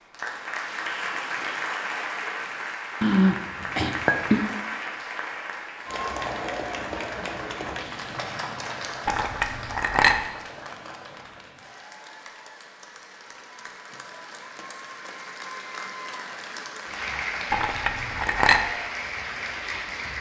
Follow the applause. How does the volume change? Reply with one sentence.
The loudness of the applause goes down, then up.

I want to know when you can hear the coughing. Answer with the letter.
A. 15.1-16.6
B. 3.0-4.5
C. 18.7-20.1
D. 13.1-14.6
B.